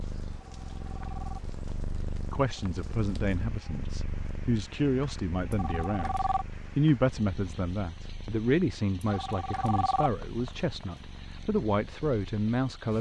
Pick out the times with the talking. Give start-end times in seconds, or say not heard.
2.3-12.9.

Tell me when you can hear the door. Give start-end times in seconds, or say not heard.
not heard.